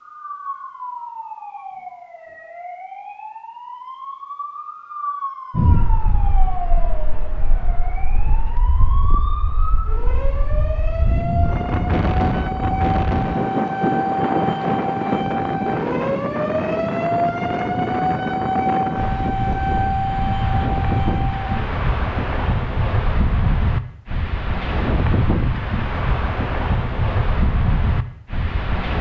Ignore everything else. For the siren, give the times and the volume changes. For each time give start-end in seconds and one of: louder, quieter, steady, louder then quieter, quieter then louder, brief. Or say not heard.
0.0-21.7 louder.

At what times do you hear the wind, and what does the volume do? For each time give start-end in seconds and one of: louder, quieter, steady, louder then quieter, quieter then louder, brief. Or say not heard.
5.5-28.9 louder.